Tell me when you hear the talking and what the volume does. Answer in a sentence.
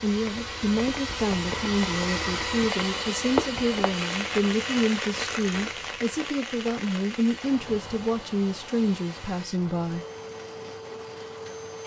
The talking can be heard from 0.0 to 10.1 s, at a steady volume.